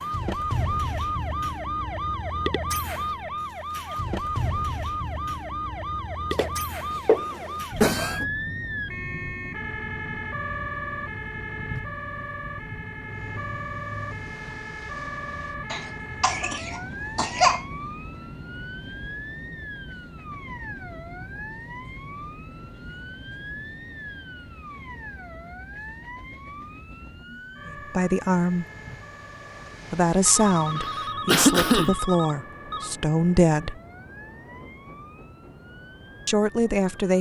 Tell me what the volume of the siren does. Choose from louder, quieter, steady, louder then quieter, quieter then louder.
quieter.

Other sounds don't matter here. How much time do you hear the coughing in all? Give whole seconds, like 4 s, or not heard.
5 s.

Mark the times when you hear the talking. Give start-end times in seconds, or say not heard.
27.6-28.6, 29.9-33.8, 36.2-37.1.